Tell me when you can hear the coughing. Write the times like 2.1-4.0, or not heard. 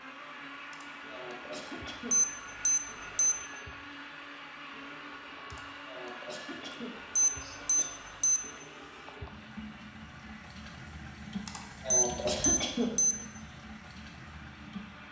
0.7-2.2, 5.5-8.0, 11.4-13.0.